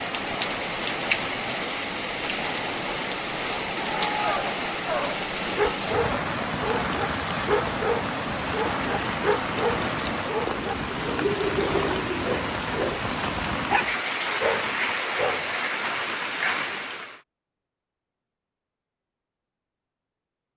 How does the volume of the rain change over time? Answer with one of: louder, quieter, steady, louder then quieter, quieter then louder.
steady.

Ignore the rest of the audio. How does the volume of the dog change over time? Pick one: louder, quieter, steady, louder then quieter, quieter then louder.
steady.